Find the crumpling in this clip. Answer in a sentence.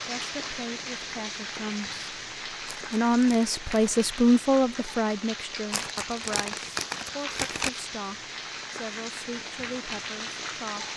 The crumpling can be heard from 2.6 to 3.9 s and from 5.7 to 7.7 s.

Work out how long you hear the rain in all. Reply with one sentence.
You can hear the rain for 11 seconds altogether.